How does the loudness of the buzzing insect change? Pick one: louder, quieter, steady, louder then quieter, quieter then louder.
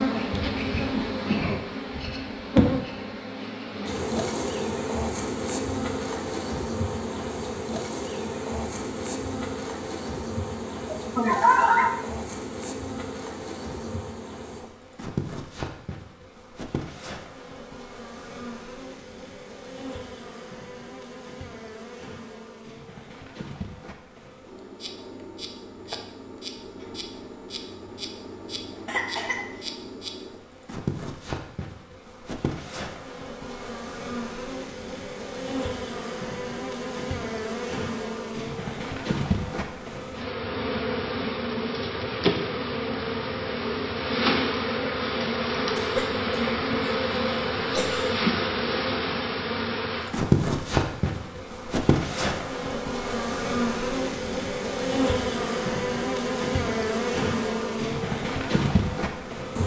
quieter then louder.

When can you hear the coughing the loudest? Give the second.
12 s.